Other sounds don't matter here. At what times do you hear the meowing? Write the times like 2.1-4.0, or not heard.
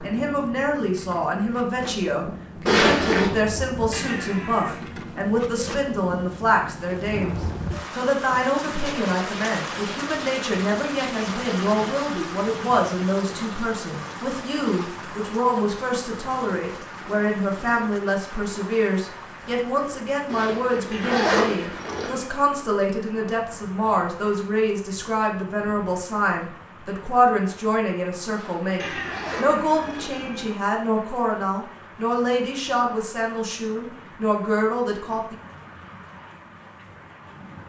3.9-5.0, 20.9-22.4, 28.8-30.6.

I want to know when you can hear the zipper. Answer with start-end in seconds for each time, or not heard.
2.6-3.3, 20.2-22.1, 28.2-30.2.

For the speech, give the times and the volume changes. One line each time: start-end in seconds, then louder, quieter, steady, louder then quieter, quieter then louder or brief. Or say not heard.
0.0-35.4 steady.